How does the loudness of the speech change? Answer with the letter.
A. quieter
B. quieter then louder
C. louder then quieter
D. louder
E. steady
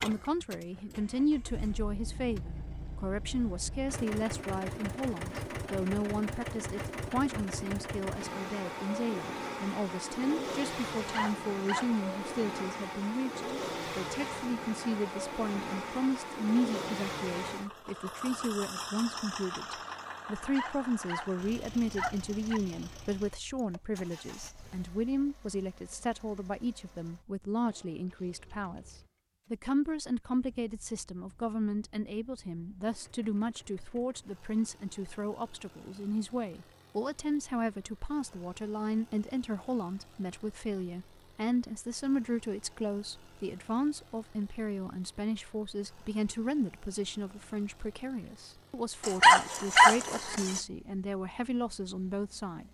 E.